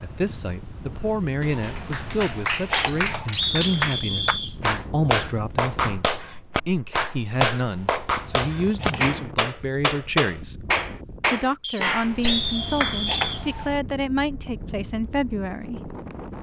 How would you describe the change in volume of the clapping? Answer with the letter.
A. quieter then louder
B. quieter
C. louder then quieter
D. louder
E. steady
E.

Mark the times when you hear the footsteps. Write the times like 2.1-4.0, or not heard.
not heard.